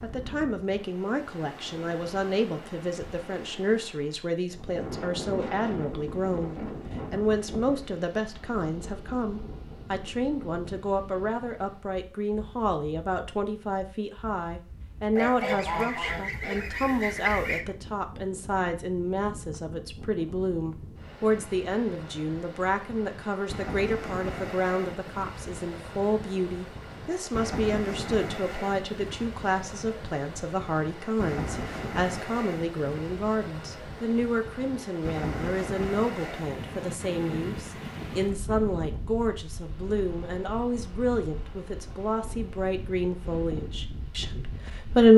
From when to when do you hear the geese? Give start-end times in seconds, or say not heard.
15.2-17.6.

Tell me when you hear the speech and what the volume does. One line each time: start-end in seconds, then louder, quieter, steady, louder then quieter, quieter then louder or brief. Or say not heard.
0.0-45.1 steady.